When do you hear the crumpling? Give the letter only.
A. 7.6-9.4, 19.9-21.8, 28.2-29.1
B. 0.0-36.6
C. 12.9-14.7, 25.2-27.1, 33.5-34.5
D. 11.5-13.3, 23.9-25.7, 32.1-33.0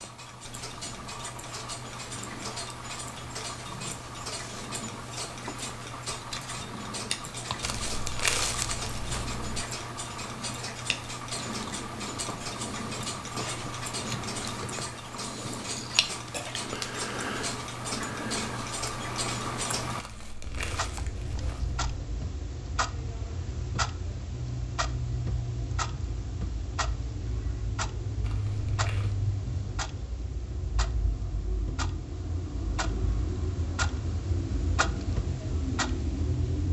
A.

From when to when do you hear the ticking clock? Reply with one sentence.
The ticking clock can be heard from 0.0 to 36.6 s.